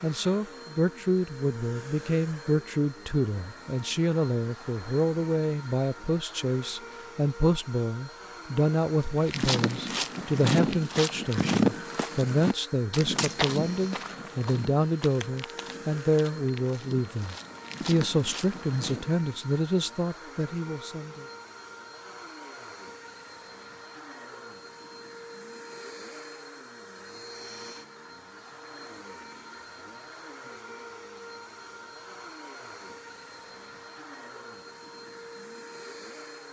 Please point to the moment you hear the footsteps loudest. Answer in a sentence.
The loudest moment of the footsteps is at 12 seconds.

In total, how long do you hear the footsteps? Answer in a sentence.
You can hear the footsteps for 10 seconds altogether.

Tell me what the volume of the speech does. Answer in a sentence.
The loudness of the speech stays about the same.